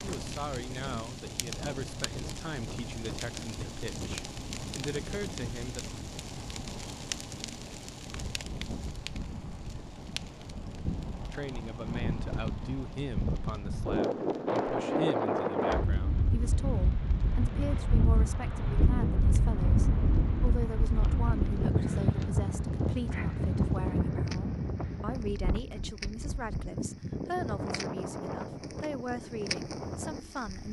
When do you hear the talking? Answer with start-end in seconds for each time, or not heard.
0.0-5.8, 11.3-30.6.